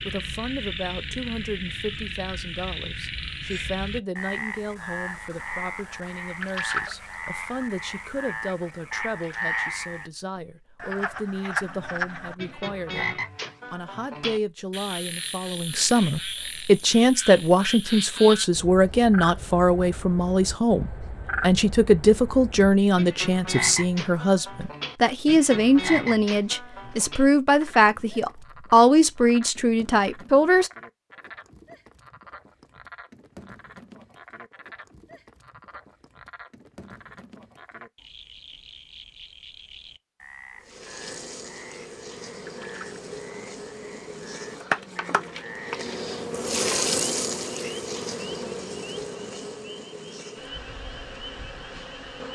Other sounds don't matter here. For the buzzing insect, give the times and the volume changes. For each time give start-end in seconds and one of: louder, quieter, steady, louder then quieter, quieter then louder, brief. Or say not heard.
40.6-52.3 louder then quieter.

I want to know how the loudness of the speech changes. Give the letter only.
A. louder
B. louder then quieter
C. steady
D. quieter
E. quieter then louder
A.